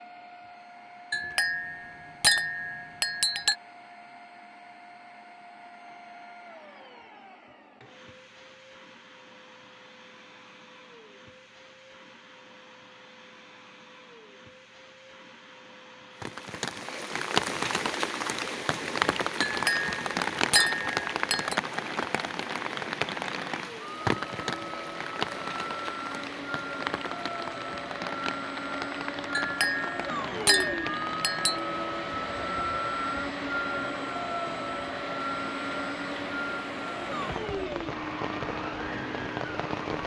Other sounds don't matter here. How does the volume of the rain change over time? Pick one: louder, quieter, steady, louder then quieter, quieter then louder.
quieter.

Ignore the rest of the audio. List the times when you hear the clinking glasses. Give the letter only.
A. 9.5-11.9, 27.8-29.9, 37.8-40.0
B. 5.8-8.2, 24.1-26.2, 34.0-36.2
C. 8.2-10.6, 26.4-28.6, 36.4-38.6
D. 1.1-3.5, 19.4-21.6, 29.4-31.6
D.